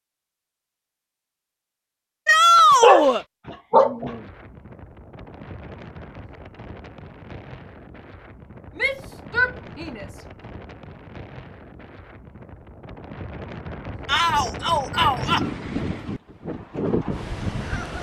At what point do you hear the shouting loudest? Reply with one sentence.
The loudest moment of the shouting is at 3 seconds.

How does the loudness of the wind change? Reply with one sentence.
The loudness of the wind goes up.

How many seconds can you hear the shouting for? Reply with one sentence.
The shouting can be heard for 4 seconds in total.